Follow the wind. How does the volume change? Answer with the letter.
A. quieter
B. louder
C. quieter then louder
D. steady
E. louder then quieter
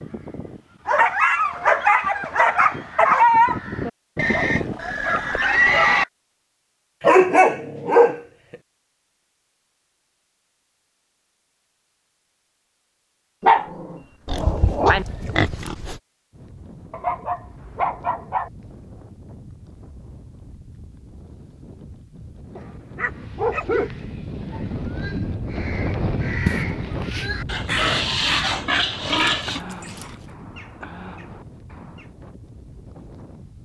E.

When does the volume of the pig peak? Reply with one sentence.
The loudest moment of the pig is at 6 seconds.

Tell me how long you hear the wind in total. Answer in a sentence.
The wind can be heard for 17 seconds in total.